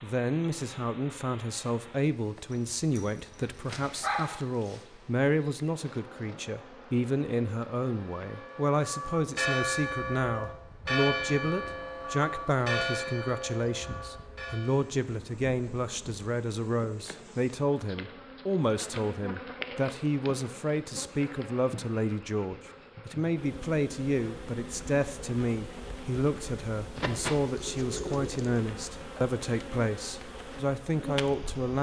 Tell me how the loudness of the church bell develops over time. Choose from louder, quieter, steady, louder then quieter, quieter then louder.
quieter.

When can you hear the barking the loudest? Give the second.
4 s.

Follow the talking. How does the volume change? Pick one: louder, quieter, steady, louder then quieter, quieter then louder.
steady.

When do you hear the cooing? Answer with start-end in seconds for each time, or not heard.
26.9-28.6.